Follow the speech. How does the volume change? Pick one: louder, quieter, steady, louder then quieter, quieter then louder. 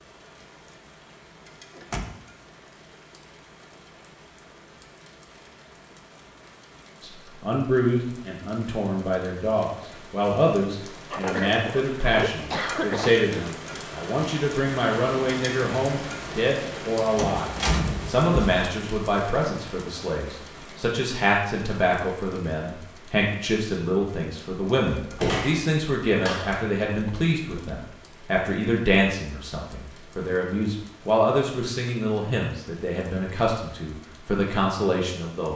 steady.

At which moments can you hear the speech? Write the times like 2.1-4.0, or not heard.
7.0-35.5.